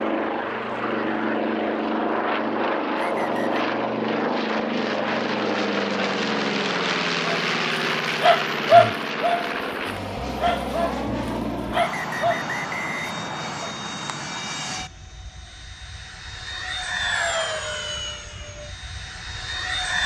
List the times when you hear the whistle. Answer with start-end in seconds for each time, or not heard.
3.0-3.6, 11.7-13.8.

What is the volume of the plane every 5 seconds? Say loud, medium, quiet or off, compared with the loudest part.
loud, loud, medium, medium.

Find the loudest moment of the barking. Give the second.
9 s.